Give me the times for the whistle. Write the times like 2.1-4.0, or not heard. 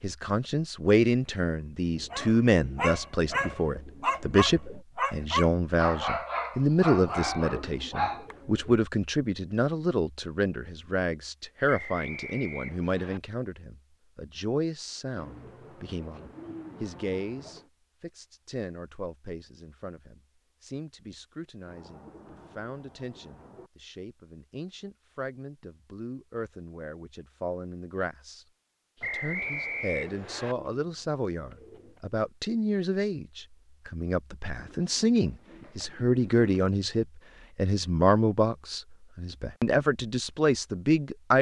11.7-13.2, 29.0-30.6.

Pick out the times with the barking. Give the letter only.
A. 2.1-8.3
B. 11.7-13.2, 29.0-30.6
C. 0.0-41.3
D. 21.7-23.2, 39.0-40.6
A.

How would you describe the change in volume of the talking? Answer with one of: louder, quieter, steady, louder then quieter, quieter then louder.
quieter then louder.